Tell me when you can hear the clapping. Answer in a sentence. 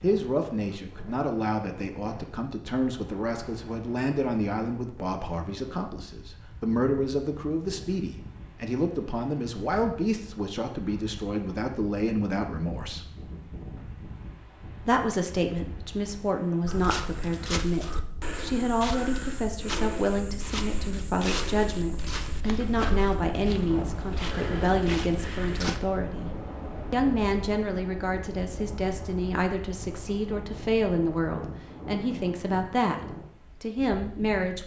You can't hear the clapping here.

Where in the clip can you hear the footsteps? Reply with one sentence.
The footsteps can be heard from 16.6 to 25.8 s.